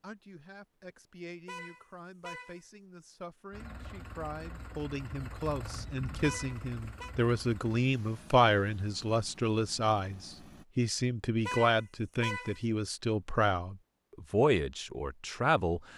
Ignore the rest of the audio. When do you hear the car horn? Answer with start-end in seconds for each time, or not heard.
1.4-2.6, 6.2-7.2, 11.4-12.7.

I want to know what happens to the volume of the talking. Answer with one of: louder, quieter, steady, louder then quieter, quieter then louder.
louder.